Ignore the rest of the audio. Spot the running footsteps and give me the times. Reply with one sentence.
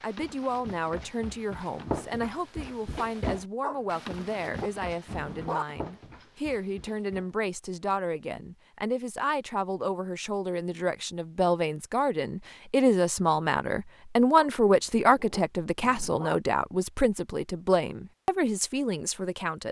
The running footsteps can be heard from 0.0 to 7.3 s.